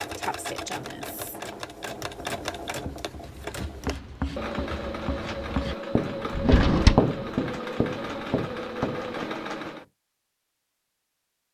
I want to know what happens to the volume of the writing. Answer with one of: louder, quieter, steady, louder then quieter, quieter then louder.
louder then quieter.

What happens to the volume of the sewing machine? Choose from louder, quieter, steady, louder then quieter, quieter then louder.
steady.